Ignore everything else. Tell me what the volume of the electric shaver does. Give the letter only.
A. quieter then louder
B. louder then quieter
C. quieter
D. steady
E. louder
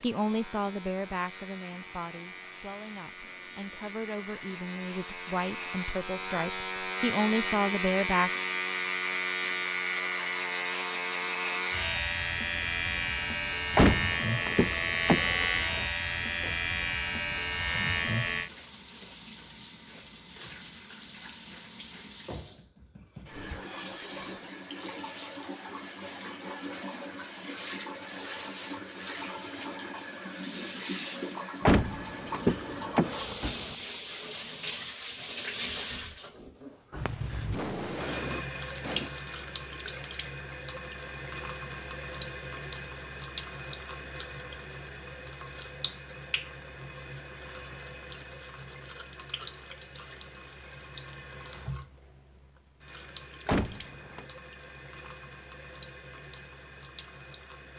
E.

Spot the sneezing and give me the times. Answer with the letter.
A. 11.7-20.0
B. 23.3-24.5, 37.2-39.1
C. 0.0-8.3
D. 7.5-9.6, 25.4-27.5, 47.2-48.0
B.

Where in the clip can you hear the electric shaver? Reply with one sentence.
The electric shaver can be heard from 0.0 to 18.5 s.